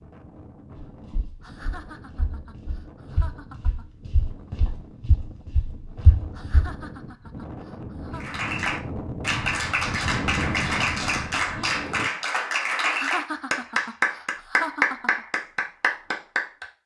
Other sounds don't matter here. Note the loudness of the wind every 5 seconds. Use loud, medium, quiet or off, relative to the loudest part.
quiet, medium, loud, off.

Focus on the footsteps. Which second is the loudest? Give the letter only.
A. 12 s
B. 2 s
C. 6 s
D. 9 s
C.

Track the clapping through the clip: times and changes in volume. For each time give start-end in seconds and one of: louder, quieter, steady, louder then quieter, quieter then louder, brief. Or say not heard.
8.2-16.6 steady.